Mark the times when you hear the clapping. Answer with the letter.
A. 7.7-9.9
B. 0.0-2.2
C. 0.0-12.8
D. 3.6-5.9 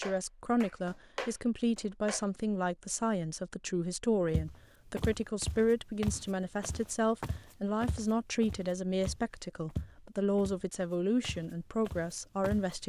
B.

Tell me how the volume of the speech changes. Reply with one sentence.
The volume of the speech stays about the same.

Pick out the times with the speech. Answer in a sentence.
You can hear the speech from 0.0 to 12.8 s.